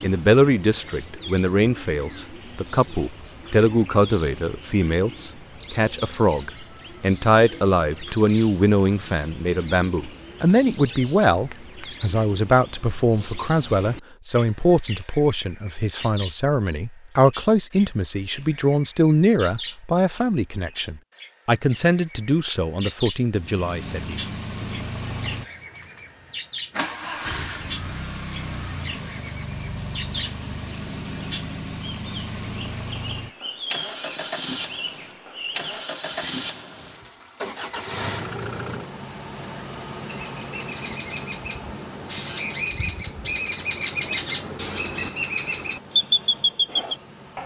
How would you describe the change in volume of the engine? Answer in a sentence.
The volume of the engine goes down.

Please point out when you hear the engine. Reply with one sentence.
The engine can be heard from 23.3 to 47.4 s.